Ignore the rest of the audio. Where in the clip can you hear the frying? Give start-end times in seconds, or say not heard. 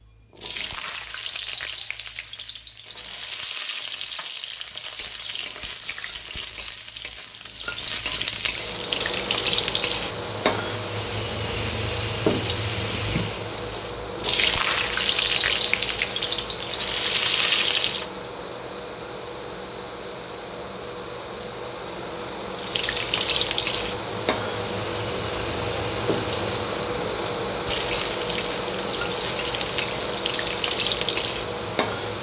0.0-18.1, 22.6-32.1.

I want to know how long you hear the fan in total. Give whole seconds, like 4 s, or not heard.
24 s.